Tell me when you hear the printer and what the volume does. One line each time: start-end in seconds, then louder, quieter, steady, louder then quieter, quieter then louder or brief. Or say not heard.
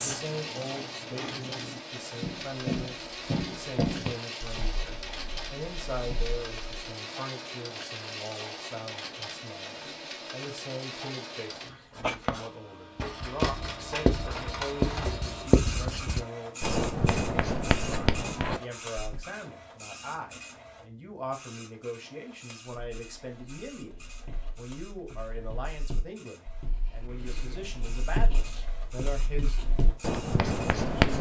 0.0-30.9 quieter.